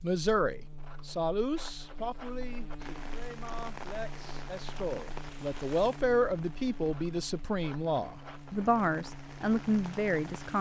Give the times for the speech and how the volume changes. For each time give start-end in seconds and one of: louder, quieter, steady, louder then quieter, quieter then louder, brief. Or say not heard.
0.0-10.5 quieter then louder.